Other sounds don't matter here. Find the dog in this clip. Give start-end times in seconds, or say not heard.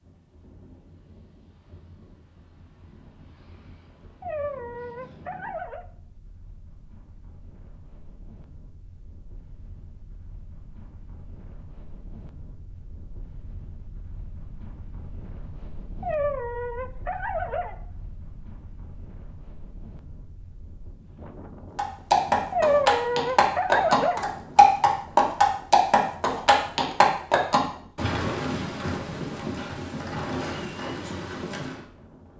4.2-5.8, 16.0-17.8, 22.5-24.7.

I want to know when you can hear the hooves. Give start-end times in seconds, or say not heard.
21.8-31.9.